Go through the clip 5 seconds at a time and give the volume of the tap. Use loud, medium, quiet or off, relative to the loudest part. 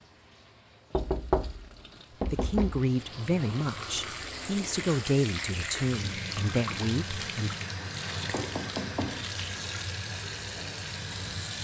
medium, loud, loud.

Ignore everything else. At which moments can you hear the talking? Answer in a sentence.
The talking can be heard from 2.3 to 7.5 s.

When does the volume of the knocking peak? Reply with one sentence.
The loudest moment of the knocking is at 1 second.